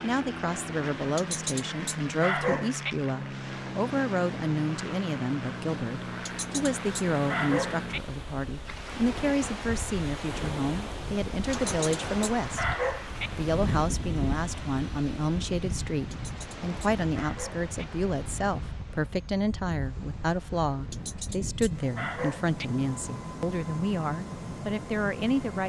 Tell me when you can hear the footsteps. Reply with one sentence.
You can't hear the footsteps here.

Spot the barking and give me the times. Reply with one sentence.
The barking can be heard from 1.1 to 3.0 s, from 6.2 to 8.0 s, from 11.5 to 13.3 s, from 16.1 to 17.7 s and from 20.9 to 22.6 s.